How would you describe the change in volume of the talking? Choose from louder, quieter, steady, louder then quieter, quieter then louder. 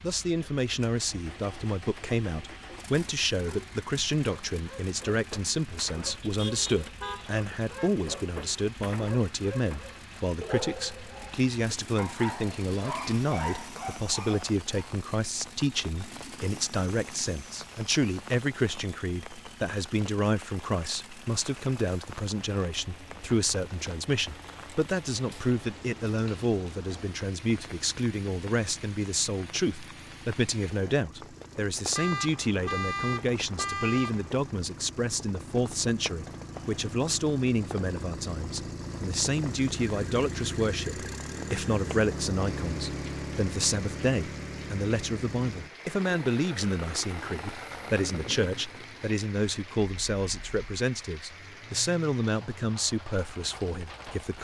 steady.